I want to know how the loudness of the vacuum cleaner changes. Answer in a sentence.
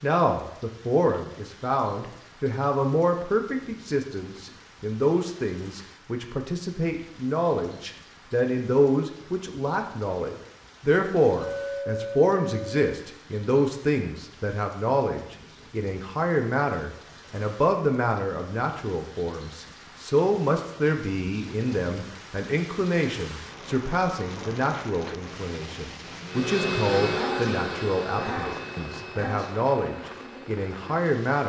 The loudness of the vacuum cleaner goes down.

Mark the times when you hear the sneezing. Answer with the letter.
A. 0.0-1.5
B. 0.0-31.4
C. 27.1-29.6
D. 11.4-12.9
C.